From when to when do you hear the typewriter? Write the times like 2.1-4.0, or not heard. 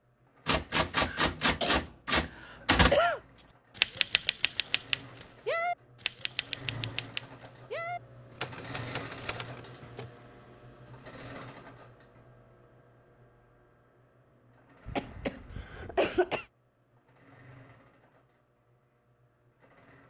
0.5-10.1.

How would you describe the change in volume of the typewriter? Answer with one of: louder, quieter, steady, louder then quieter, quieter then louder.
quieter.